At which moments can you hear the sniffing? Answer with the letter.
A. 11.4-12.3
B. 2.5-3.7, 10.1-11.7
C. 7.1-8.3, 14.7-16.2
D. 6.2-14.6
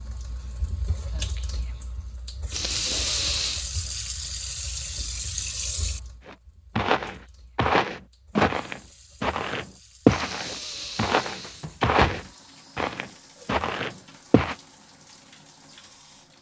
B.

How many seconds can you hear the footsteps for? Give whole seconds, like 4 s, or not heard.
8 s.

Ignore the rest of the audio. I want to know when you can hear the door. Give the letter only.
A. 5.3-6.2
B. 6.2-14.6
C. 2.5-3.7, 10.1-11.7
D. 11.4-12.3
D.